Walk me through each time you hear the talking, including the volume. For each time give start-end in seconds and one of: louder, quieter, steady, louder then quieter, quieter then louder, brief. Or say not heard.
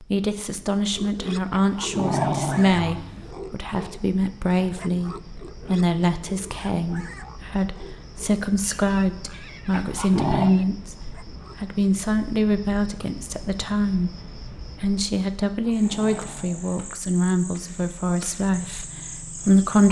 0.0-19.8 steady.